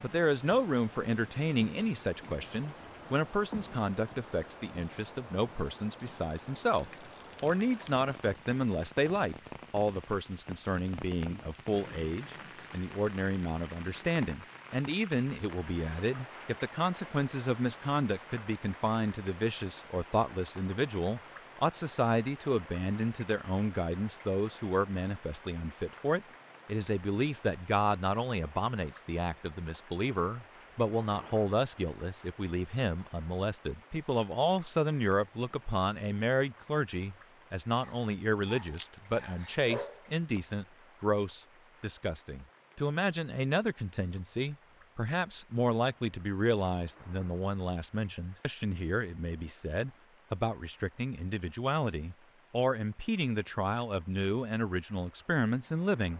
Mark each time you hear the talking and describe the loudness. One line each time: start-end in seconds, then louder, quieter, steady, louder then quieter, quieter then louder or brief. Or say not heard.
0.0-56.1 steady.